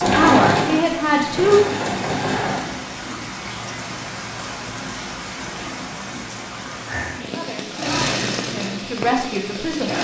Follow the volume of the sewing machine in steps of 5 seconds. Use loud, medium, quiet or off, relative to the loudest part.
loud, medium.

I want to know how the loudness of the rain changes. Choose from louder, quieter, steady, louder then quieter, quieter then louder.
steady.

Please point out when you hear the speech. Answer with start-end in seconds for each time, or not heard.
0.0-1.6, 7.3-9.9.